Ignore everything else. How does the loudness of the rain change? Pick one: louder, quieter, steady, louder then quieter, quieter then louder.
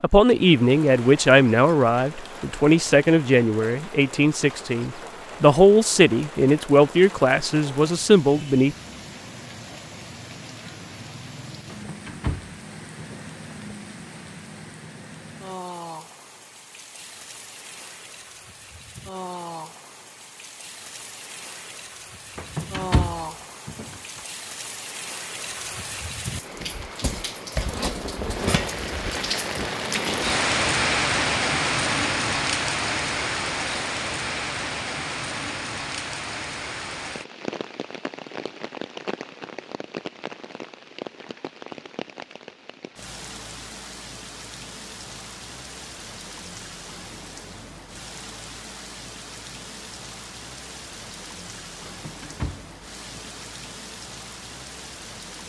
louder then quieter.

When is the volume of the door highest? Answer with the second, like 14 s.
23 s.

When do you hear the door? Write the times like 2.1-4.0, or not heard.
11.7-13.3, 22.4-24.2, 51.9-53.5.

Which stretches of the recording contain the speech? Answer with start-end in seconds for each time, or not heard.
0.0-8.8.